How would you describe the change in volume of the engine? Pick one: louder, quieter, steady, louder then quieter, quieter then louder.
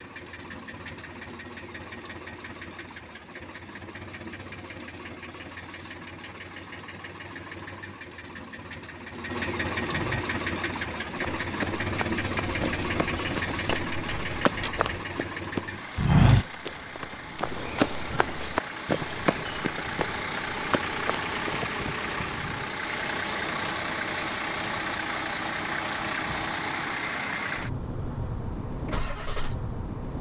louder.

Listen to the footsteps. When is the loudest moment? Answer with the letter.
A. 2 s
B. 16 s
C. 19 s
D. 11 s
B.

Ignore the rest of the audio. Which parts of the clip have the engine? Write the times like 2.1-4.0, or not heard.
0.0-30.1.